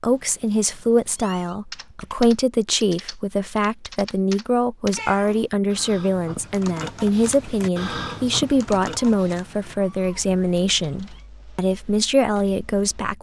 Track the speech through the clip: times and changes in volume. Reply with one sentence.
You can hear the speech from 0.0 to 13.1 s, at a steady volume.